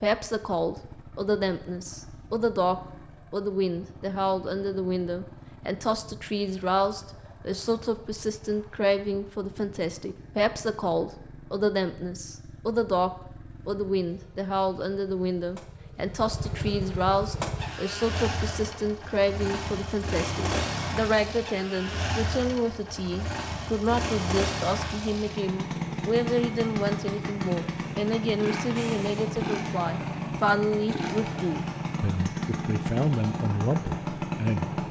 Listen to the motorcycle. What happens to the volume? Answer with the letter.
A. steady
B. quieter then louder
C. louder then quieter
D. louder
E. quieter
D.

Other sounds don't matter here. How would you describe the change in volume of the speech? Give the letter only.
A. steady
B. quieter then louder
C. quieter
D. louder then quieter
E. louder
A.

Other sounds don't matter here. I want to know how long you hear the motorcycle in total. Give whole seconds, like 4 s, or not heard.
35 s.